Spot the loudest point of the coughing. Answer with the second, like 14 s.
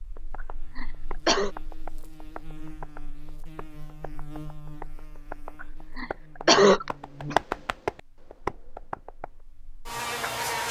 7 s.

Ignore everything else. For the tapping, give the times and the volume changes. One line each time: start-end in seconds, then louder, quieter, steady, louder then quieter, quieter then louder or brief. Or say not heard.
0.1-9.3 louder.